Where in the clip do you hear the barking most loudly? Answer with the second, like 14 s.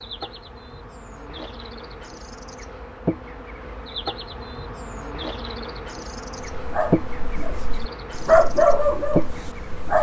8 s.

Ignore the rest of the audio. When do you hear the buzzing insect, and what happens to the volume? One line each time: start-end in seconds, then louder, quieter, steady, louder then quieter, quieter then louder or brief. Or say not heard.
0.0-9.9 louder.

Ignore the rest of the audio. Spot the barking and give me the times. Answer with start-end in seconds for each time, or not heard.
6.4-9.9.